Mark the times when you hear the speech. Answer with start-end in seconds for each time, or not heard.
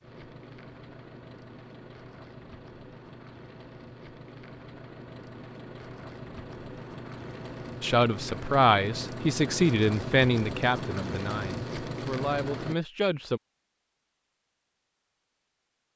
7.8-13.4.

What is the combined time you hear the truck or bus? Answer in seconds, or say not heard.
13 s.